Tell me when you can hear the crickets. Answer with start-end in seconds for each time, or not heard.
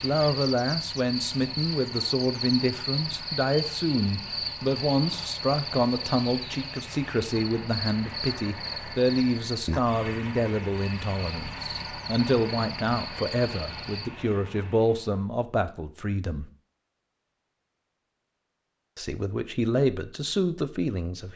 0.0-14.1.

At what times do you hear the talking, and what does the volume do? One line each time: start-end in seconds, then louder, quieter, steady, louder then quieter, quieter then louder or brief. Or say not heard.
0.0-16.4 steady
18.9-21.3 brief.